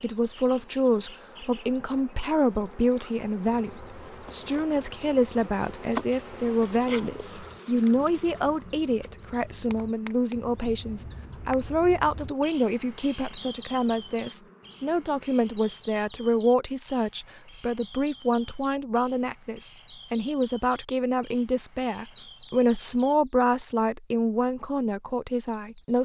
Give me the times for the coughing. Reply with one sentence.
The coughing can't be heard in this clip.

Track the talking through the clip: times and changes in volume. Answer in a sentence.
The talking can be heard from 0.0 to 26.0 s, at a steady volume.